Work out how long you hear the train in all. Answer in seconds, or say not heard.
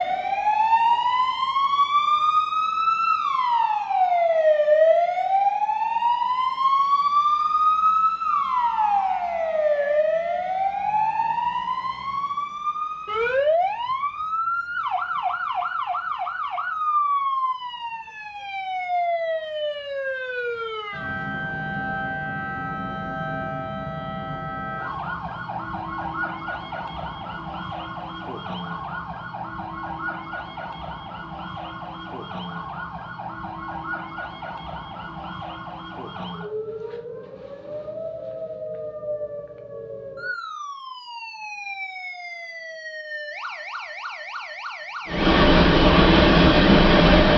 2 s.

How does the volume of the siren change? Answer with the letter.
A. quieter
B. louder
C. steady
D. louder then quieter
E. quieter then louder
A.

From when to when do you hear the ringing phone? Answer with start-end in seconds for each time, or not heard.
not heard.